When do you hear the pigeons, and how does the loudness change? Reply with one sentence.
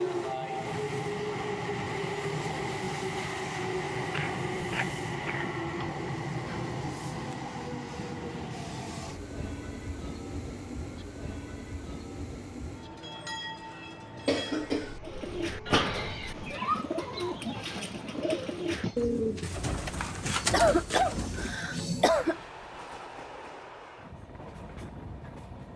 The pigeons can be heard from 15.0 to 21.7 s, at a steady volume.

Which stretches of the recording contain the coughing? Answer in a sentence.
The coughing can be heard from 4.1 to 5.8 s, from 14.2 to 15.0 s and from 19.9 to 22.4 s.